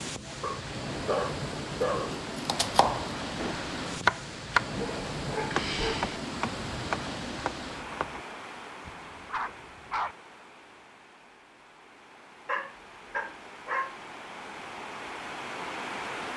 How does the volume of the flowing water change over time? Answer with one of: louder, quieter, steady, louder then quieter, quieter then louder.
quieter then louder.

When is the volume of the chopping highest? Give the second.
4 s.